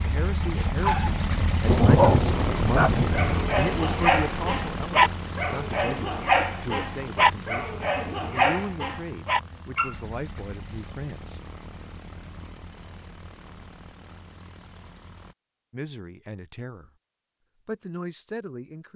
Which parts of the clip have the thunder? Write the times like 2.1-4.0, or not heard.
1.6-3.4.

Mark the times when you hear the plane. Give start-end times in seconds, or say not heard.
0.0-15.3.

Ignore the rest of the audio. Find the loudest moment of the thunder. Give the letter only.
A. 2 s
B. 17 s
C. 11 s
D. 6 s
A.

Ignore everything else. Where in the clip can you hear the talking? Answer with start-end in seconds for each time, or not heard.
0.0-11.4, 15.7-16.9, 17.6-18.9.